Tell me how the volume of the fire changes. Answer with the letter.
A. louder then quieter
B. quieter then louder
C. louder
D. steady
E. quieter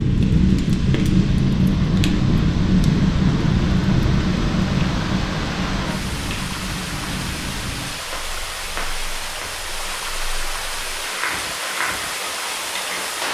B.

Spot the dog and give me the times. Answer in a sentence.
You can't hear the dog here.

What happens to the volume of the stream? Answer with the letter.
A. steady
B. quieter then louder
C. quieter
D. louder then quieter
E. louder
E.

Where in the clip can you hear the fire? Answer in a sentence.
The fire can be heard from 0.0 to 13.2 s.